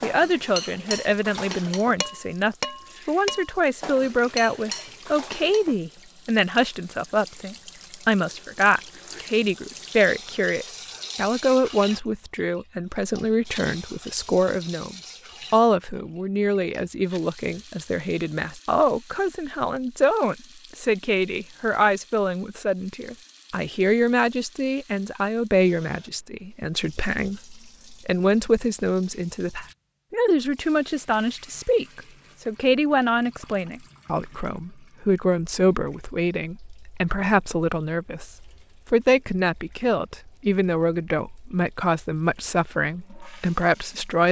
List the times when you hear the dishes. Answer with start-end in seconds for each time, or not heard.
0.0-5.8.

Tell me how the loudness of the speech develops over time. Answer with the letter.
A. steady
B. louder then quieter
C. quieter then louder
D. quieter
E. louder
A.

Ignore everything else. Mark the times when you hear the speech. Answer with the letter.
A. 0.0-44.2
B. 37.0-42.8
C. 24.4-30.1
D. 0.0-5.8
A.